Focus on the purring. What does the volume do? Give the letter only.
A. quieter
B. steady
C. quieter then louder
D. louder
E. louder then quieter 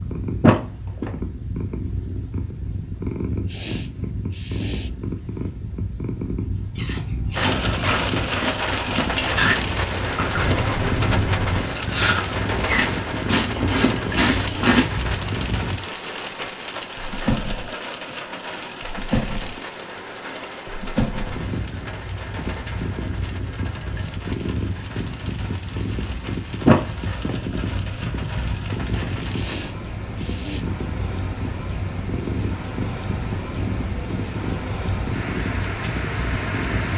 B.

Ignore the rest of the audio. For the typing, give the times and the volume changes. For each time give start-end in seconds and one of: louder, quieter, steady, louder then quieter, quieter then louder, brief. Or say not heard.
not heard.